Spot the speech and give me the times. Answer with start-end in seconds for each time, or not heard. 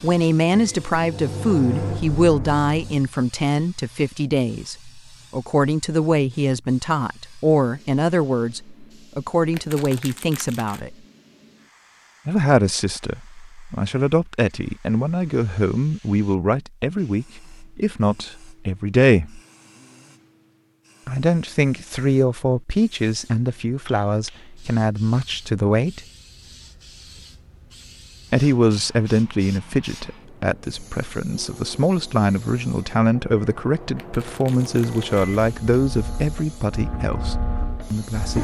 0.0-10.9, 12.2-19.4, 21.1-26.0, 28.3-38.3.